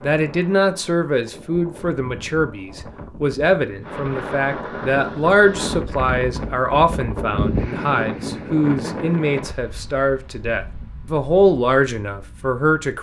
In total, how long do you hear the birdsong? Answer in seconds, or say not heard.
not heard.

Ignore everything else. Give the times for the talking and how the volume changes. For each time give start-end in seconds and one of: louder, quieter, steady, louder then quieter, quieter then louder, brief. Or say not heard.
0.0-12.9 steady.